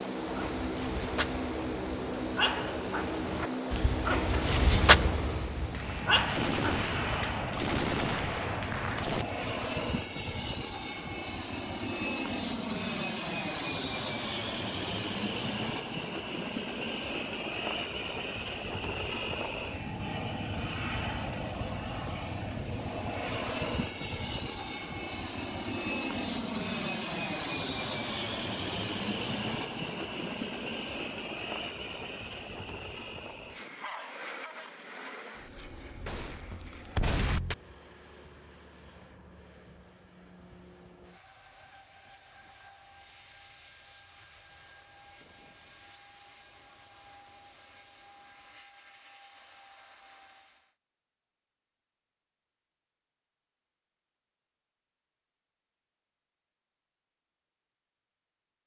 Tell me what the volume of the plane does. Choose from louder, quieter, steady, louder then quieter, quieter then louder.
quieter.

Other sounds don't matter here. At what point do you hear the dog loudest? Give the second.
5 s.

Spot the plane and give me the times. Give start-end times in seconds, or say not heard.
0.0-50.8.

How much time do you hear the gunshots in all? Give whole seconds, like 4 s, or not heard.
5 s.